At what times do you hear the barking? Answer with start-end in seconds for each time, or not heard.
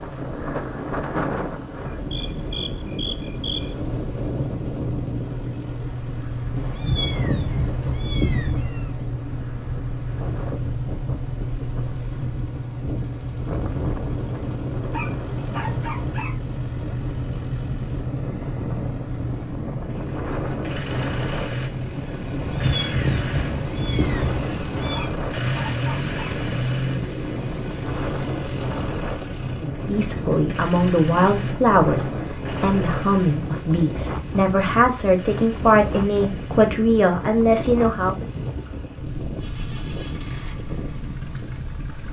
14.9-16.4, 24.9-26.4.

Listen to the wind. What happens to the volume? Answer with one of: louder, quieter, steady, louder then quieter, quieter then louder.
steady.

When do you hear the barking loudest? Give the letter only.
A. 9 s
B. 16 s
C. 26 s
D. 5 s
B.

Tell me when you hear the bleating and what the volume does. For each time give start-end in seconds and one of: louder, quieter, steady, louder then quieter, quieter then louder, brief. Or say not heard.
not heard.